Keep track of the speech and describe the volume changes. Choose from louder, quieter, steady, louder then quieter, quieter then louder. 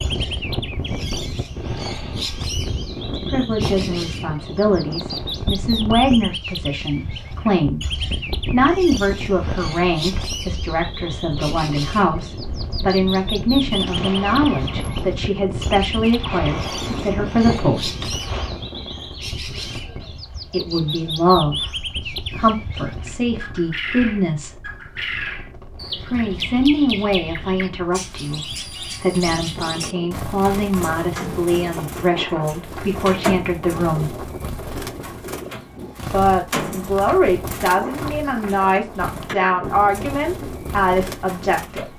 steady.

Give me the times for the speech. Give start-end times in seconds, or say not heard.
3.0-7.8, 8.5-18.1, 20.5-24.6, 26.1-34.1, 36.1-41.9.